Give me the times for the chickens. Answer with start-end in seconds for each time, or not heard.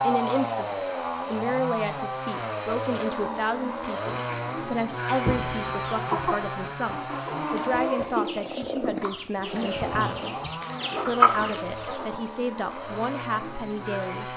5.1-12.2.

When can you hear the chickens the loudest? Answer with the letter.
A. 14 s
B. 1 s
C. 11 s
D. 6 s
C.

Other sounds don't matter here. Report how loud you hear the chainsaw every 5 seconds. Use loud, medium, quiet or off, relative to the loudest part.
loud, loud, medium.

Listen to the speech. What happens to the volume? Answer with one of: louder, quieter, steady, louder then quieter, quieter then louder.
steady.